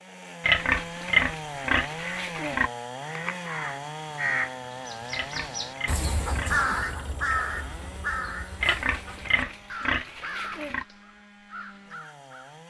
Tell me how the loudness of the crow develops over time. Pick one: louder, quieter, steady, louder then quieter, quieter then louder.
louder then quieter.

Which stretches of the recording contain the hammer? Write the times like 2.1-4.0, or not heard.
not heard.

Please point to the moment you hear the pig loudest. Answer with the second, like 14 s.
1 s.